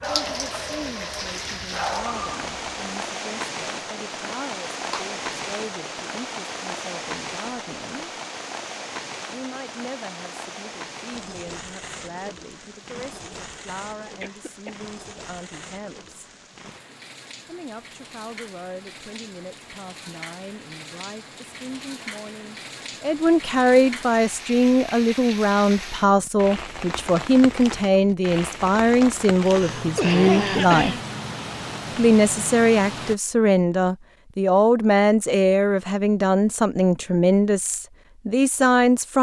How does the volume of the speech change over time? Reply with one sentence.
The loudness of the speech goes up.